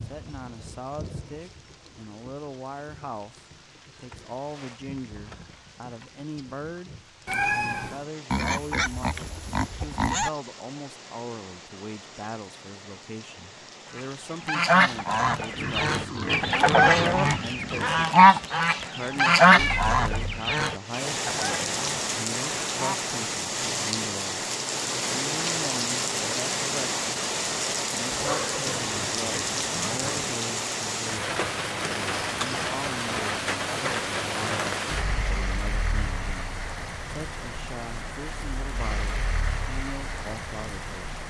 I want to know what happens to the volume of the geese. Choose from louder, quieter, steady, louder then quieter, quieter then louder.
louder then quieter.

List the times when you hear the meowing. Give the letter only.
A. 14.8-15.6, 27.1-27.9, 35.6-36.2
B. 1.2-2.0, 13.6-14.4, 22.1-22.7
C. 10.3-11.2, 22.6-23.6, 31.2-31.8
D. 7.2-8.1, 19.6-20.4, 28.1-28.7
D.